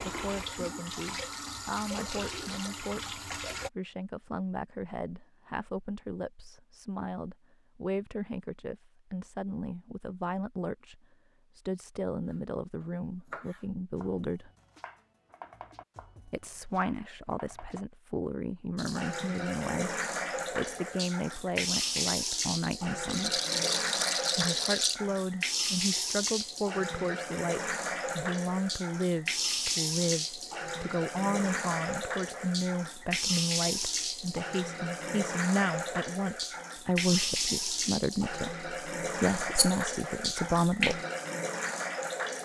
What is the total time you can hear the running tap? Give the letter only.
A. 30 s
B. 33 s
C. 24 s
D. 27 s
D.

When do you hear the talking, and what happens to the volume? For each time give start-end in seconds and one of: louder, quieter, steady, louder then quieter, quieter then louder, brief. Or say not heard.
0.0-14.5 steady
16.2-23.4 steady
24.4-41.0 steady.